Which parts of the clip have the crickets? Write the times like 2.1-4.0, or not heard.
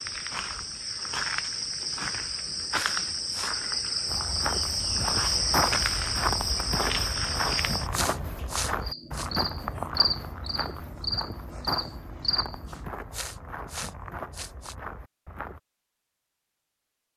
0.0-12.8.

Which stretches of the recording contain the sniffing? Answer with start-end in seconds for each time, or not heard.
2.7-3.5, 7.9-9.3, 13.1-14.8.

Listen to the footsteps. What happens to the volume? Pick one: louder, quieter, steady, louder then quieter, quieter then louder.
quieter.